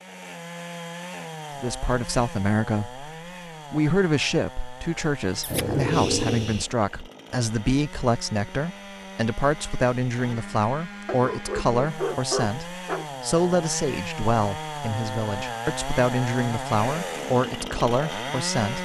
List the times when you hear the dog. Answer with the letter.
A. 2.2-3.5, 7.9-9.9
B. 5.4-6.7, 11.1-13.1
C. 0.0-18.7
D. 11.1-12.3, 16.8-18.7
B.